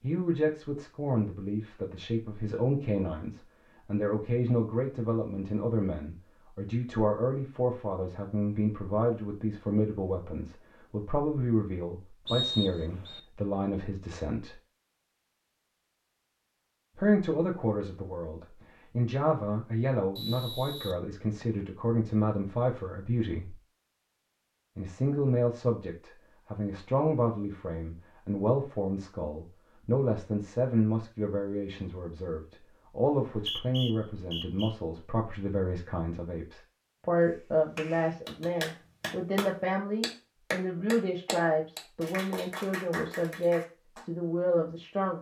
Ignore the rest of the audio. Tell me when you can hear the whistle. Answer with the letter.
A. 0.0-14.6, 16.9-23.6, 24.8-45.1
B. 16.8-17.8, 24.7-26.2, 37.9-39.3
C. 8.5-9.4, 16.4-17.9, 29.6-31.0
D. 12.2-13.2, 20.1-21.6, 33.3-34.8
D.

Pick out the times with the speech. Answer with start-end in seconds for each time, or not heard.
0.0-14.6, 16.9-23.6, 24.8-45.1.